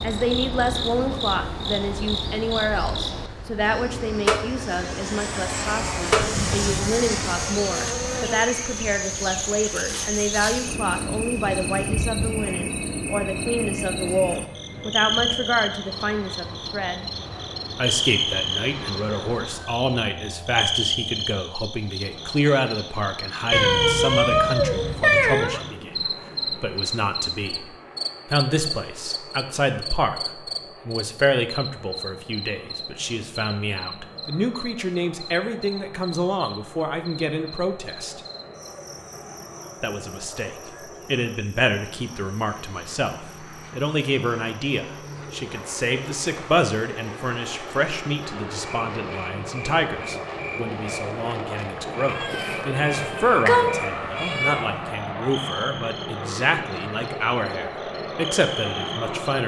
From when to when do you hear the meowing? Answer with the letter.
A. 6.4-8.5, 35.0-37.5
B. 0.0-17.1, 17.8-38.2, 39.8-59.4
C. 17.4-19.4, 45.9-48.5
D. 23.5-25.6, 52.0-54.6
D.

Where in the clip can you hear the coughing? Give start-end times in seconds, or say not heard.
not heard.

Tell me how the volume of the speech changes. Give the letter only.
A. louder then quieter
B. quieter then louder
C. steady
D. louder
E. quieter
C.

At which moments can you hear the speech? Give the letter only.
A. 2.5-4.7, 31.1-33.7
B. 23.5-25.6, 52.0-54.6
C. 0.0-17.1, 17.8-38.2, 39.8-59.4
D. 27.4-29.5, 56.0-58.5
C.